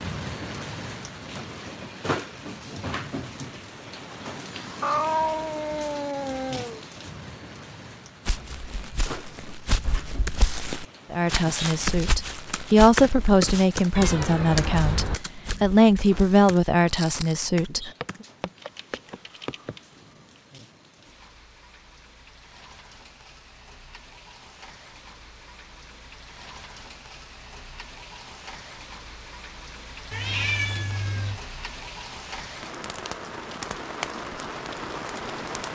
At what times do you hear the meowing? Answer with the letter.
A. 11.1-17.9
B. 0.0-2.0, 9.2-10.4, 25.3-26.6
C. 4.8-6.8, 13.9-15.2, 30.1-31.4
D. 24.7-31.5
C.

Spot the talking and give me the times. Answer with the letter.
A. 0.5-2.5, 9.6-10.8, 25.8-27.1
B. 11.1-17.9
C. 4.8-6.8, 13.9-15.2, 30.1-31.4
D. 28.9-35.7
B.